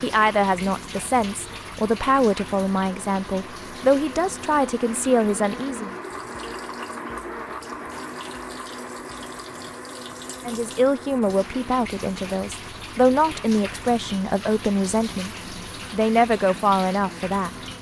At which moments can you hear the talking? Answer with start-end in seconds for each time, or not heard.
0.0-6.0, 10.4-15.3, 15.9-17.5.